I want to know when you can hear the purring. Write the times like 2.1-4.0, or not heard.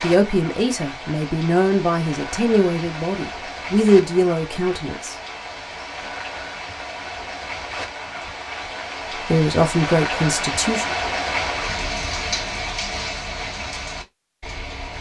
not heard.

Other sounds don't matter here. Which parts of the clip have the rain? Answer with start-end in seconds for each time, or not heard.
0.0-14.9.